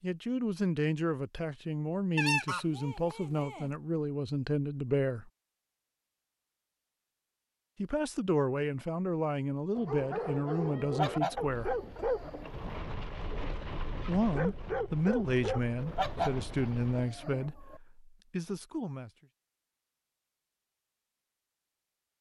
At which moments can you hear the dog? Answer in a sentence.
The dog can be heard from 9.8 to 17.2 s.